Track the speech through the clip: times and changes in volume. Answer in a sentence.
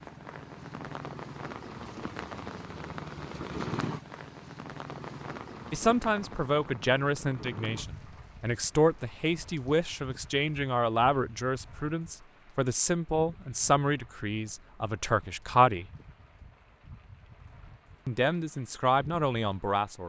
The speech can be heard from 5.7 to 15.8 s, at a steady volume; and briefly from 18.1 to 20.0 s.